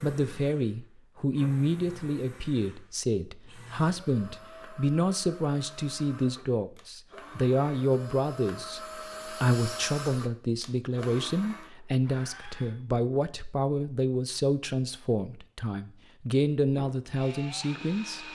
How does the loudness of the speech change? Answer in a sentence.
The volume of the speech stays about the same.